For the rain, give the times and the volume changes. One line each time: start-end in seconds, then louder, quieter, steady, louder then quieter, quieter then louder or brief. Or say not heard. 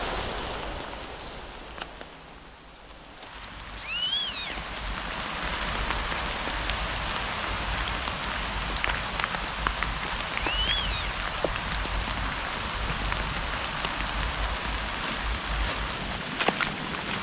0.0-17.1 louder.